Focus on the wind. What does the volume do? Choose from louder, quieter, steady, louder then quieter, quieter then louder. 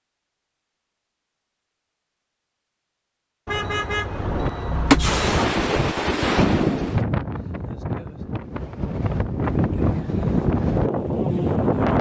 quieter then louder.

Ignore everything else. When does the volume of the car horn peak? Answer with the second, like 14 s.
5 s.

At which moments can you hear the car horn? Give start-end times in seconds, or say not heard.
3.5-5.5.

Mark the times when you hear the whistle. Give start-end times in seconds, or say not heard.
not heard.